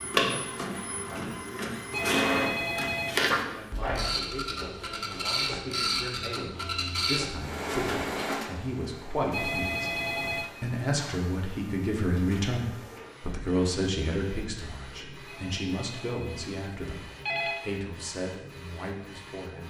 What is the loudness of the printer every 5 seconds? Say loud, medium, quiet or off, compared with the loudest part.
loud, loud, quiet, quiet.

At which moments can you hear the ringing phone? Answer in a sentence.
The ringing phone can be heard from 1.9 to 3.5 s, from 9.3 to 10.4 s and from 15.2 to 17.6 s.